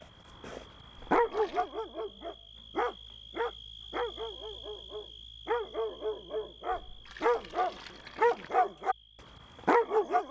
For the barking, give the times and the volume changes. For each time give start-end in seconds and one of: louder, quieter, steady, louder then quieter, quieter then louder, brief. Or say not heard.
0.4-8.9 quieter then louder
9.7-10.2 brief.